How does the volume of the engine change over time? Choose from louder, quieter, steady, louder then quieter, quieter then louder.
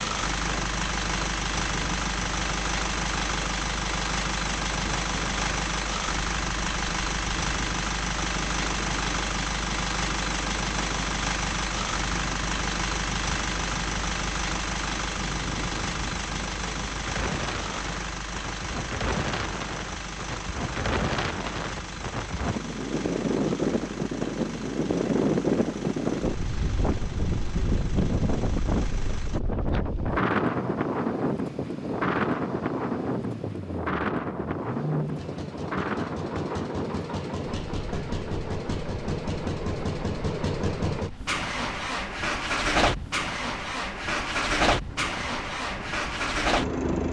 quieter then louder.